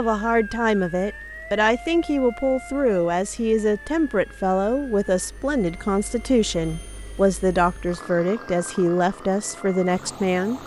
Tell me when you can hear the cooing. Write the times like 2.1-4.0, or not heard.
not heard.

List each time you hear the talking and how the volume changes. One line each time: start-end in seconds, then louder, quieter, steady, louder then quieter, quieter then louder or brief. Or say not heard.
0.0-10.6 steady.